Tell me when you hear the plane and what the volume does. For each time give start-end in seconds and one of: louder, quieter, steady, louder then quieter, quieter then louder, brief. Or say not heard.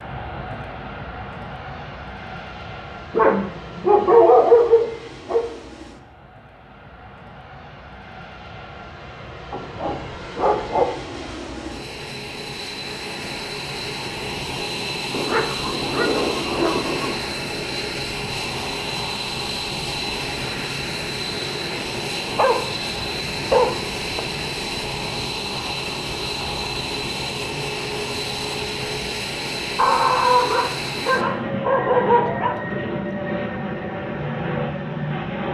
0.0-35.4 louder.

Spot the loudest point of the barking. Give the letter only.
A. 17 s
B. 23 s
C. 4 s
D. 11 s
C.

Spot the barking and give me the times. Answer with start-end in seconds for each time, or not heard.
3.1-5.5, 9.5-10.8, 15.1-17.1, 22.4-24.2, 29.8-32.6.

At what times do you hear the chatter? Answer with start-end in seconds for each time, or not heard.
not heard.